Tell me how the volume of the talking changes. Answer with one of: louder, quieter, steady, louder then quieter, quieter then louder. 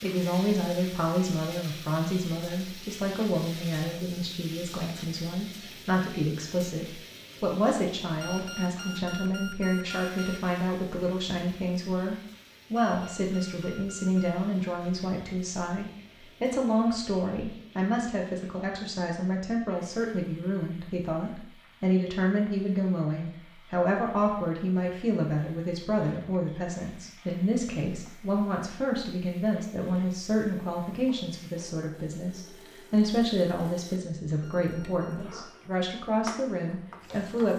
steady.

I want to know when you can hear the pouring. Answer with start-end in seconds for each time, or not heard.
not heard.